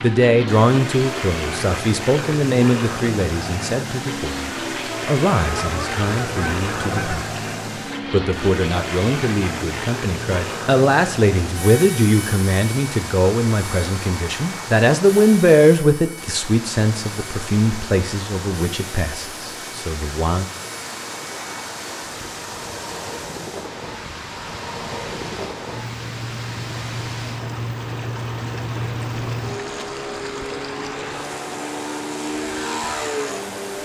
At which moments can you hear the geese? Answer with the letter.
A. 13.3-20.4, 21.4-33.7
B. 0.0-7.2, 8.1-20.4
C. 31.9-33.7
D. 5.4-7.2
D.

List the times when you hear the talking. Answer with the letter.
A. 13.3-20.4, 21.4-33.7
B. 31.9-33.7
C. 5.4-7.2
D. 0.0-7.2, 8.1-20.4
D.